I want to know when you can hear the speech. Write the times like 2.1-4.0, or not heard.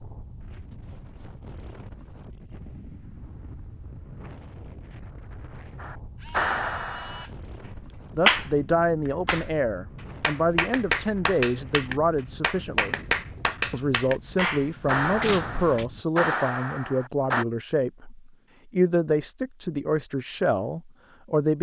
8.2-13.0, 13.7-21.5.